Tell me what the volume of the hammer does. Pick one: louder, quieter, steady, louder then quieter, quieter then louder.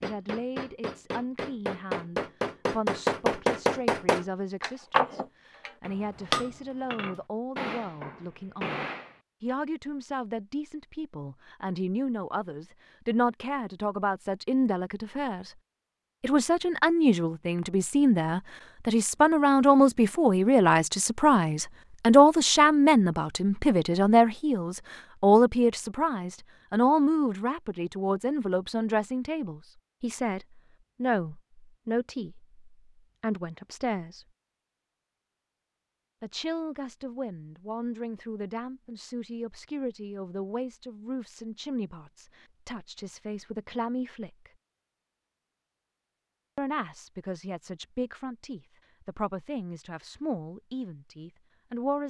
louder then quieter.